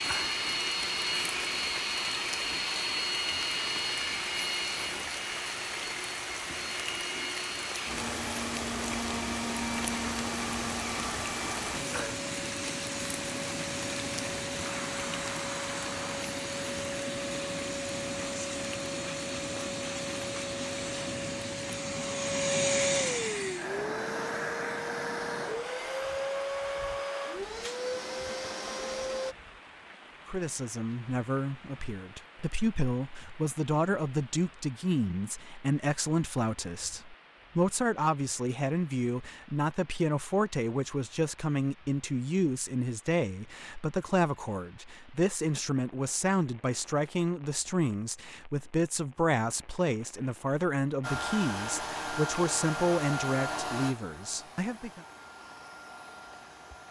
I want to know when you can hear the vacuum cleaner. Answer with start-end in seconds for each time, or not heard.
0.0-29.4, 51.0-56.8.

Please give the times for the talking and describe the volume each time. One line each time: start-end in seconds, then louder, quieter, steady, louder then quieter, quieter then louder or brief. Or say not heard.
30.2-55.0 steady.